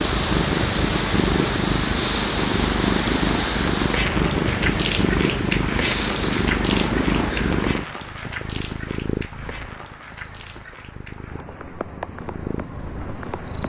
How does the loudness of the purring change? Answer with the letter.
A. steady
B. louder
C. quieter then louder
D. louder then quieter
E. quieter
E.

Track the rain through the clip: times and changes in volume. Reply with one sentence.
The rain can be heard from 0.0 to 13.6 s, getting quieter.